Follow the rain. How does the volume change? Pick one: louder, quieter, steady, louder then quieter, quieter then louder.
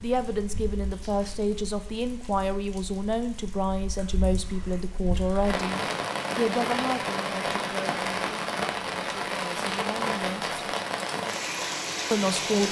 louder.